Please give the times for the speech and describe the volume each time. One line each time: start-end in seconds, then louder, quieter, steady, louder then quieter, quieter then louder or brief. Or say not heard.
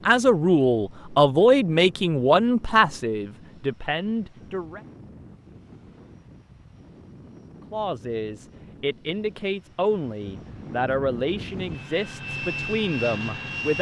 0.1-4.8 quieter
7.7-13.7 steady.